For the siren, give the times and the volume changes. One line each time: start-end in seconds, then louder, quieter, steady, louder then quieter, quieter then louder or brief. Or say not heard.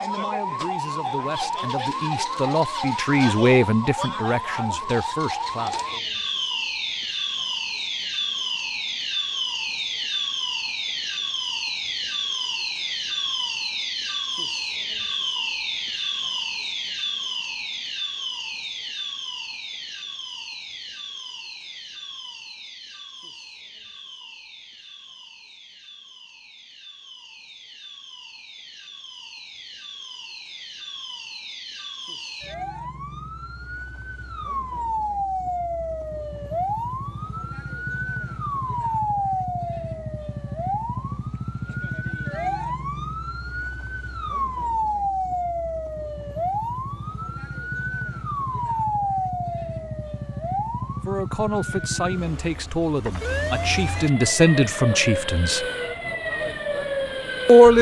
0.0-57.7 quieter then louder.